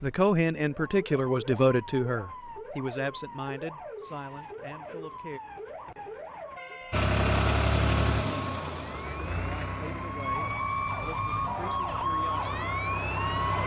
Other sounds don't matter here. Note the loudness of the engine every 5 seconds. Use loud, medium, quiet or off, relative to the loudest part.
off, loud, medium.